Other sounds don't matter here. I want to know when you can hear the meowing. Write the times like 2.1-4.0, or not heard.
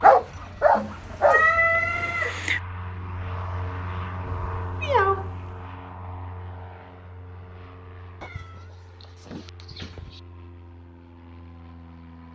0.8-2.6, 4.2-5.3, 8.2-10.2.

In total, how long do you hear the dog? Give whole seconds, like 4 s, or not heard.
2 s.